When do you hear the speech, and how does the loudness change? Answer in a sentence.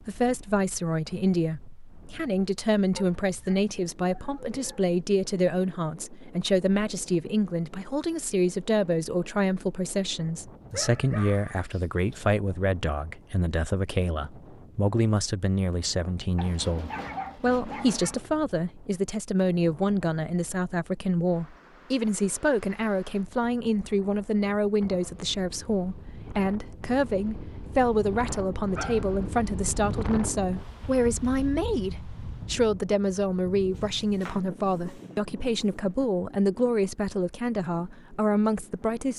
The speech can be heard from 0.0 to 39.1 s, at a steady volume.